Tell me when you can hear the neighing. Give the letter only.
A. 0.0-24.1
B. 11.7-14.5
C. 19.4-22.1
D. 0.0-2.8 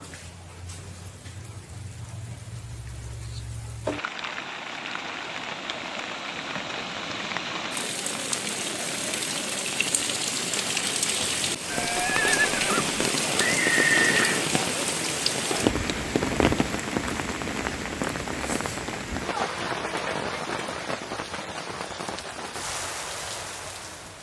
B.